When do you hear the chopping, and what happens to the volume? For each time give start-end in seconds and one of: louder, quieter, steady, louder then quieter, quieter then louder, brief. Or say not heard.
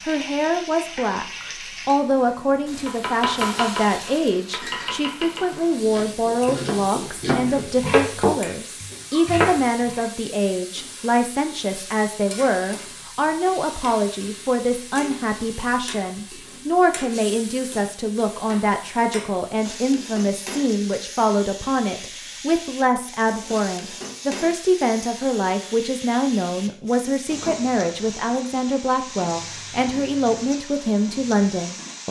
2.9-10.0 quieter then louder.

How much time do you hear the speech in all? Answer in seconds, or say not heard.
32 s.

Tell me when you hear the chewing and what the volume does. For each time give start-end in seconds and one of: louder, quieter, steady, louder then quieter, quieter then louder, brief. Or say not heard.
not heard.